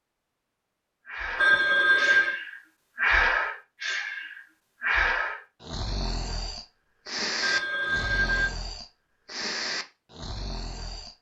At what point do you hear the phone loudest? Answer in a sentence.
The volume of the phone peaks at 2 seconds.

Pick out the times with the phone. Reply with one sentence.
The phone can be heard from 1.4 to 2.4 s and from 7.4 to 8.5 s.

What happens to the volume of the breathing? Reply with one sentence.
The loudness of the breathing goes down.